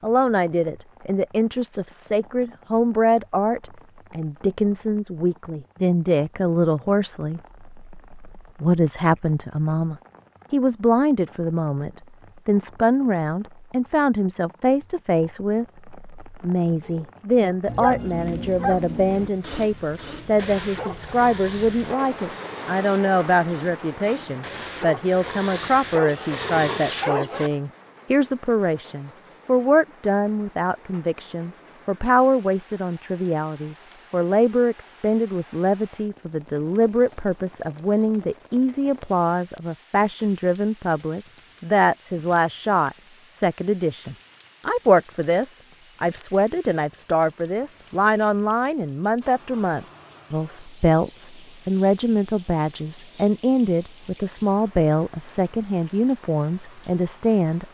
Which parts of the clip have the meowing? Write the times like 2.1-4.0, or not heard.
not heard.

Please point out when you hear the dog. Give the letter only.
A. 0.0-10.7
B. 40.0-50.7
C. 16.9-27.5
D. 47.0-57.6
C.